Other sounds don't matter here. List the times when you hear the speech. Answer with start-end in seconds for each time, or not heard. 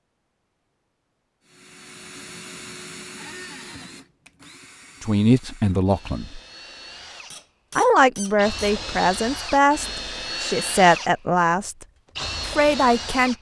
5.0-6.4, 7.8-11.8, 12.4-13.3.